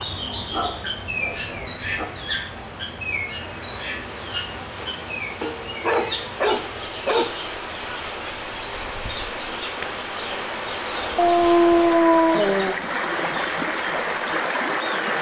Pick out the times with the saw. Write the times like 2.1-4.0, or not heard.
not heard.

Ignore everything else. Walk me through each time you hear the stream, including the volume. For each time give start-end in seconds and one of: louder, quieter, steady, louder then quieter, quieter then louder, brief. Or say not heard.
0.0-15.1 louder.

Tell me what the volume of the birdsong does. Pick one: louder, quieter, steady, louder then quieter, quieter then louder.
quieter.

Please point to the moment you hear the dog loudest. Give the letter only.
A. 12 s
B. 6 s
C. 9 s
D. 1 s
A.